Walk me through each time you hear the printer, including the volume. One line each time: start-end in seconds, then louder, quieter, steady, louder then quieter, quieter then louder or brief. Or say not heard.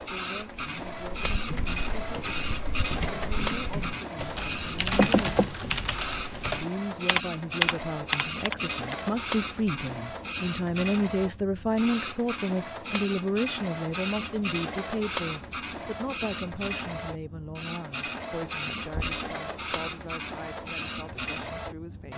0.0-22.1 steady.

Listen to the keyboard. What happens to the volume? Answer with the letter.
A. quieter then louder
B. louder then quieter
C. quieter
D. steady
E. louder
E.